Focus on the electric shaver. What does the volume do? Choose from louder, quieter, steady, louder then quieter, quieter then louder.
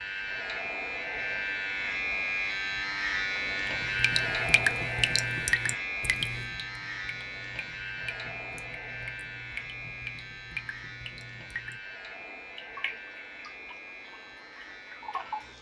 quieter.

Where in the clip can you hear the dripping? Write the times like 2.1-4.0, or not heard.
3.6-15.5.